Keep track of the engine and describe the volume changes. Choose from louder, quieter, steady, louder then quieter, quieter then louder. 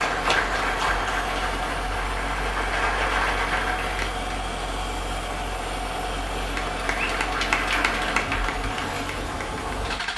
steady.